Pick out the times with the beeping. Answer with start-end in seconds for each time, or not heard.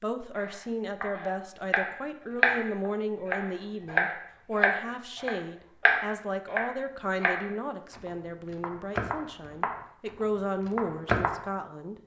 not heard.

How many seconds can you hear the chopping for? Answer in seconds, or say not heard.
11 s.